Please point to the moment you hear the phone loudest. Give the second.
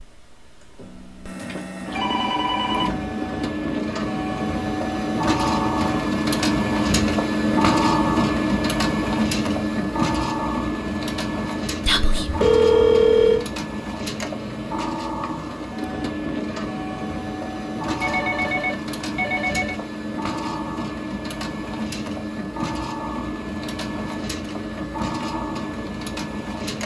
13 s.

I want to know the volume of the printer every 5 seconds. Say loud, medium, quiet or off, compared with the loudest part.
medium, loud, medium, medium, medium, medium.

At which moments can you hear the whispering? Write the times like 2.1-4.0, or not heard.
11.8-12.3.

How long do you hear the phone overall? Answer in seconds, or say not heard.
4 s.